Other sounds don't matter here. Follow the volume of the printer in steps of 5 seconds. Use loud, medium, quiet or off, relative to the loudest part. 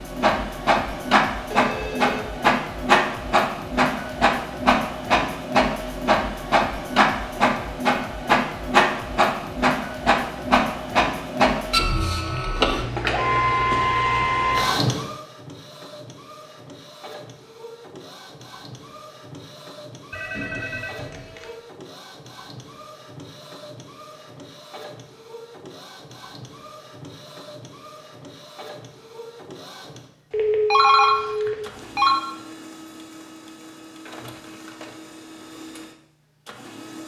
loud, loud, loud, quiet, quiet, quiet, quiet, quiet.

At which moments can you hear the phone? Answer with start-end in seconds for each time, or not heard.
1.5-2.3, 20.1-21.6, 30.3-32.1.